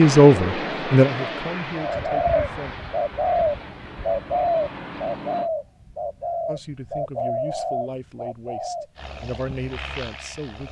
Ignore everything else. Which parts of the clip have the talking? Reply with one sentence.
The talking can be heard from 0.0 to 2.8 s and from 6.5 to 10.6 s.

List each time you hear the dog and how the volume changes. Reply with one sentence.
You can't hear the dog here.